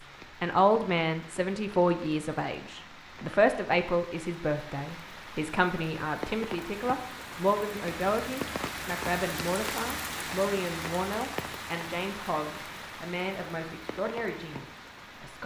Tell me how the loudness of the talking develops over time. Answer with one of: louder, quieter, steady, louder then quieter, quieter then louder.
quieter.